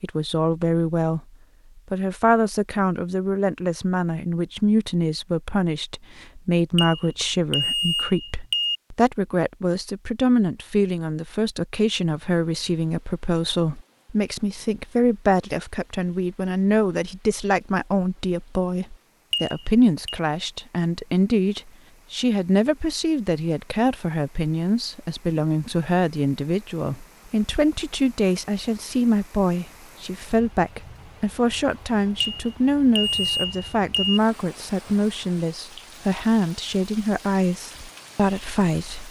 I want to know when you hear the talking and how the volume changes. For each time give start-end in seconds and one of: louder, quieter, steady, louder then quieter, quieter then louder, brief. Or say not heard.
0.0-1.2 brief
1.9-39.0 steady.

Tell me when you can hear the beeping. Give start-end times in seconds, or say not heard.
6.8-8.8, 19.3-20.2, 32.5-34.2.